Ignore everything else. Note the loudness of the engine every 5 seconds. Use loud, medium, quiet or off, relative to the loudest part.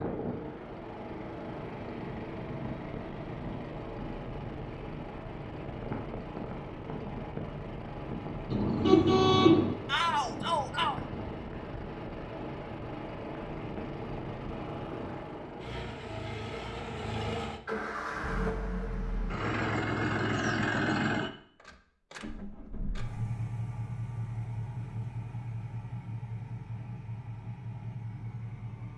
medium, medium, medium, loud, loud, medium.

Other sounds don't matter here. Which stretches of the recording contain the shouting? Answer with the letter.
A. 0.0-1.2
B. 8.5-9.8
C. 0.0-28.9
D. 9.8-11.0
D.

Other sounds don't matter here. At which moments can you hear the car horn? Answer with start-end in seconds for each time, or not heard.
8.5-9.8.